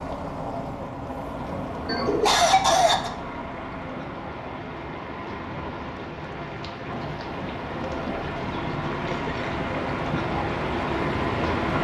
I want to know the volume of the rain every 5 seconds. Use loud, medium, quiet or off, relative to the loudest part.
quiet, medium, loud.